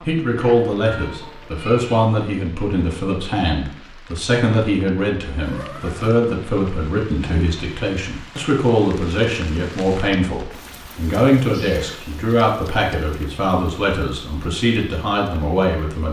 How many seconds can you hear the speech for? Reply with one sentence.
You can hear the speech for 16 seconds altogether.